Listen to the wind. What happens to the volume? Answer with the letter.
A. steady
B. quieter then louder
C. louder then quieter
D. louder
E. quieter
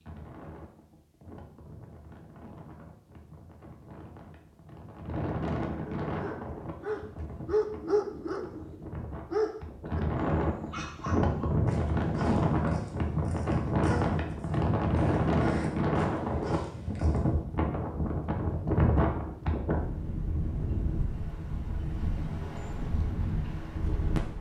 C.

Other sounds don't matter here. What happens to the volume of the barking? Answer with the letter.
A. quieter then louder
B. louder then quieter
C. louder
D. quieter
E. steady
D.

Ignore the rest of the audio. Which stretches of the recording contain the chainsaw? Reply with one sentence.
The chainsaw can't be heard in this clip.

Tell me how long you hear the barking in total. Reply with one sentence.
You can hear the barking for 11 seconds altogether.